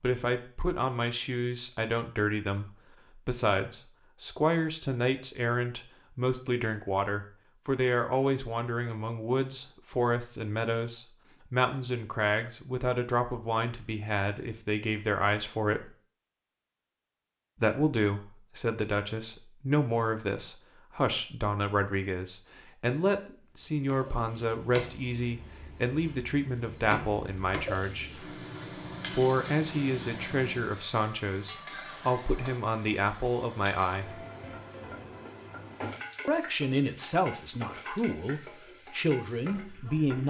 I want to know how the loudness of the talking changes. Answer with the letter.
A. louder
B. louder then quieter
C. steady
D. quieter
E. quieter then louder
C.